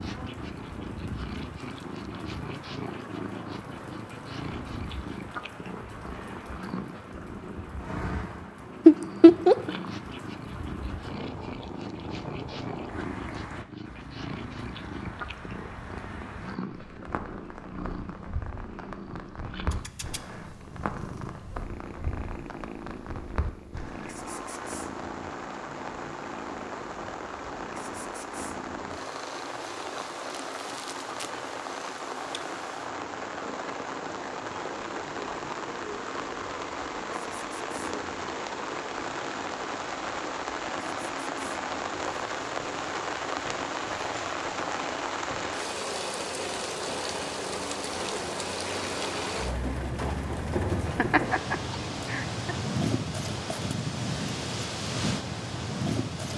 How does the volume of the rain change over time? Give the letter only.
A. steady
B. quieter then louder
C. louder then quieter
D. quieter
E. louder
E.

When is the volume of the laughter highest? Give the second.
9 s.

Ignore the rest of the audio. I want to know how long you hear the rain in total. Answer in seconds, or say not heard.
56 s.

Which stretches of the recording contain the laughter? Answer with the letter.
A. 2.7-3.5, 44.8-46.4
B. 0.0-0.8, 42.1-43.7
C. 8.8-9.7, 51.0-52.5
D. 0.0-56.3
C.